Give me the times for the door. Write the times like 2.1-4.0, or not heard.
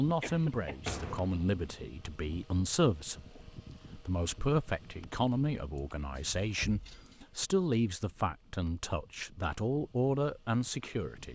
0.8-1.4, 5.8-7.2.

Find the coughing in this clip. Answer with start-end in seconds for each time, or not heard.
0.2-0.8.